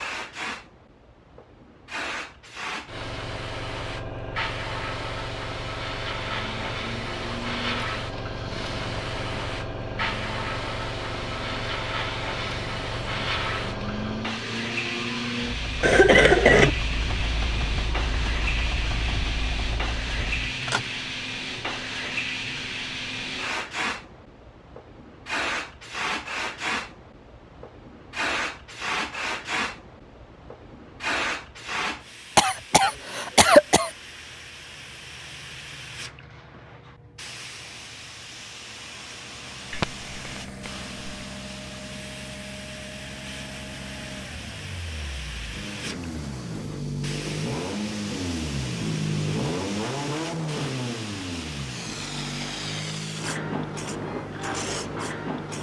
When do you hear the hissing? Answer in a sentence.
The hissing can be heard from 0.0 to 55.5 s.